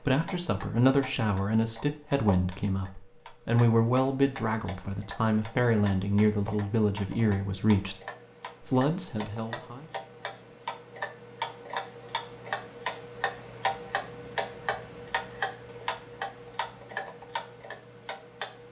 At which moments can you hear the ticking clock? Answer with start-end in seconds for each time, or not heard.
0.0-18.6.